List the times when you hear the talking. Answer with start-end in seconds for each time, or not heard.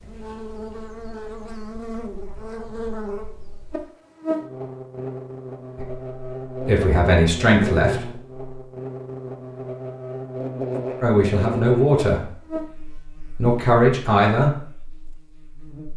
5.8-8.4, 11.0-12.3, 13.3-14.5.